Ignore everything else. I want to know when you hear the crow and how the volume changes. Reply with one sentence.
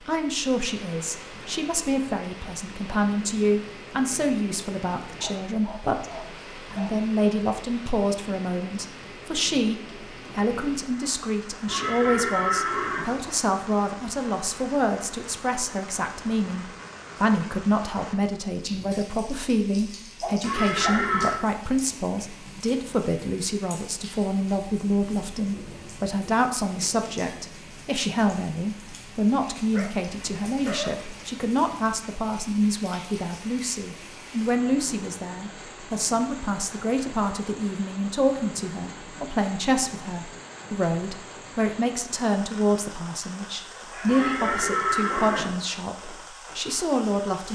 The crow can't be heard in this clip.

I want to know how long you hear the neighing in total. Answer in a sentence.
You can hear the neighing for 4 seconds altogether.